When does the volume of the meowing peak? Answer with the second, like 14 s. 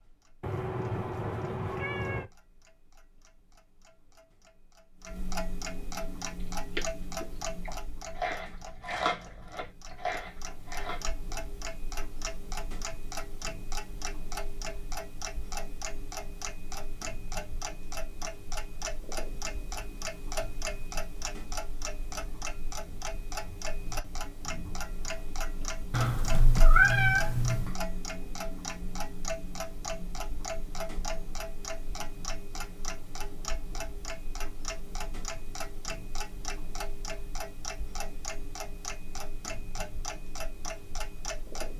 27 s.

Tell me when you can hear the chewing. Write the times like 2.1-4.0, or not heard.
6.2-11.1.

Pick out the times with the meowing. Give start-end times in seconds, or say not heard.
0.4-2.3, 25.9-27.8.